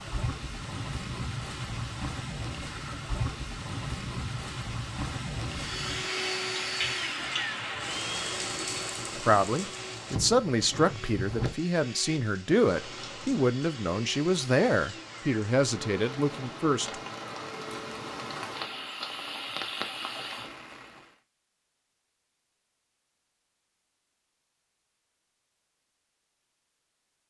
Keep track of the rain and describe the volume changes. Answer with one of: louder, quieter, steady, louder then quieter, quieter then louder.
quieter then louder.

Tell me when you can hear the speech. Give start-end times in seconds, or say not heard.
9.2-16.9.